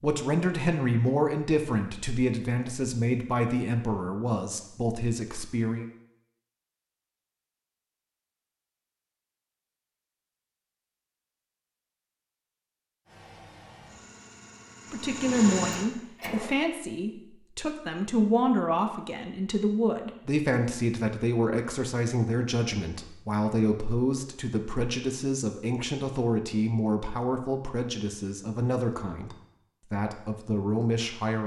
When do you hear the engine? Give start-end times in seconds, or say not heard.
13.1-16.6.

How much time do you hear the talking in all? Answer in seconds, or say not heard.
22 s.